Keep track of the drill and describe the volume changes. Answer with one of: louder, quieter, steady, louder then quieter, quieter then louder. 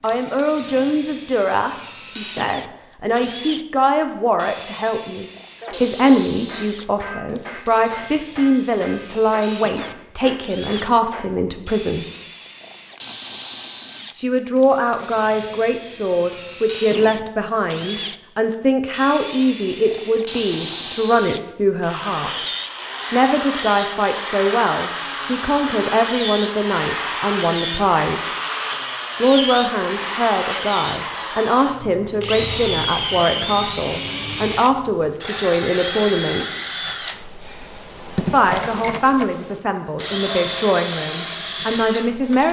louder.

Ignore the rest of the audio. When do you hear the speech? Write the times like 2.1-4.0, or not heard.
0.0-12.1, 14.2-22.4, 23.1-28.2, 29.2-36.5, 38.3-42.4.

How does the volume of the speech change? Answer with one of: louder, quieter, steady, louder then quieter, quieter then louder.
steady.